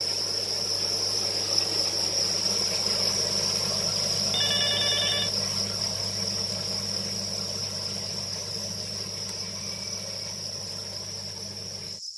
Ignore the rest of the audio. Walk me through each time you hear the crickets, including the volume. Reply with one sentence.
The crickets can be heard from 0.0 to 12.1 s, getting quieter.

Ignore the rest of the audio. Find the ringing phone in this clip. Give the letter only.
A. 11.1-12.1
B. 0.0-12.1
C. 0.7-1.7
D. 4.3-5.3
D.